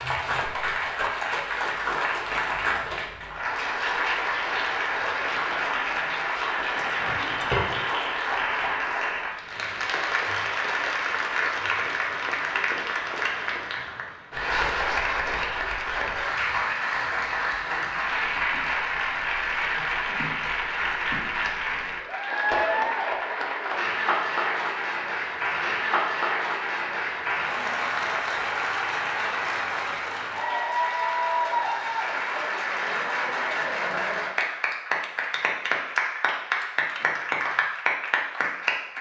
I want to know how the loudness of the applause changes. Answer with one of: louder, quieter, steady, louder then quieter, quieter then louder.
steady.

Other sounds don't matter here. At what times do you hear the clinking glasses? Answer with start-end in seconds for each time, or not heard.
6.8-7.7.